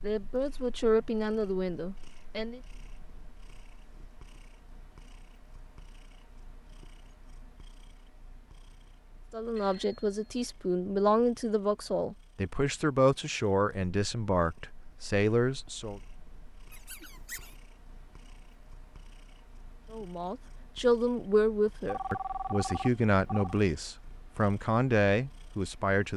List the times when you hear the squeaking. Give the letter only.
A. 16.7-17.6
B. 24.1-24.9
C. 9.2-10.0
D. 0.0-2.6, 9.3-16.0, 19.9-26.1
A.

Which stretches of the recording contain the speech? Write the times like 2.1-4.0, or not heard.
0.0-2.6, 9.3-16.0, 19.9-26.1.